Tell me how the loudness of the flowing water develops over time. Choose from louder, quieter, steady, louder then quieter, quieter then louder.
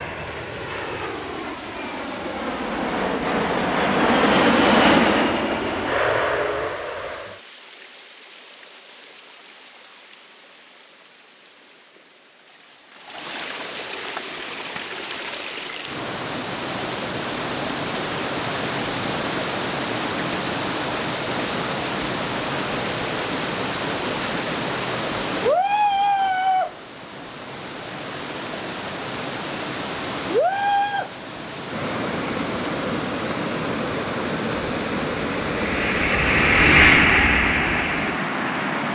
louder.